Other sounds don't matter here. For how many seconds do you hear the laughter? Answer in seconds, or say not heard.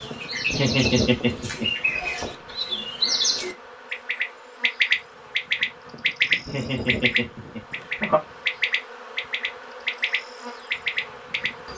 3 s.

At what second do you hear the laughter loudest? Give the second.
1 s.